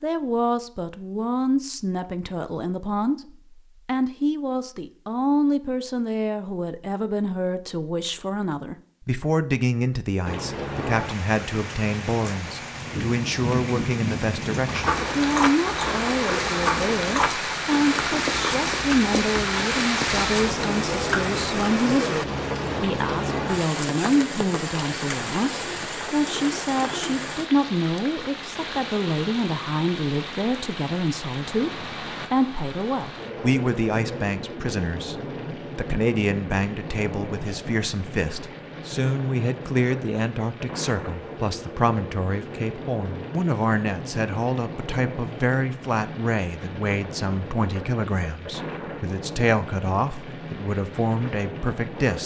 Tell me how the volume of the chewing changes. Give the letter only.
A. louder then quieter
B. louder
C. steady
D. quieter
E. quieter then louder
D.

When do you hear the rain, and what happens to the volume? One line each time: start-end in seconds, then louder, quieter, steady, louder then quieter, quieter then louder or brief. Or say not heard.
10.2-52.2 quieter.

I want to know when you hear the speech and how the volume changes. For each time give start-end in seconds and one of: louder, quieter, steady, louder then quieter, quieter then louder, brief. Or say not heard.
0.0-52.2 steady.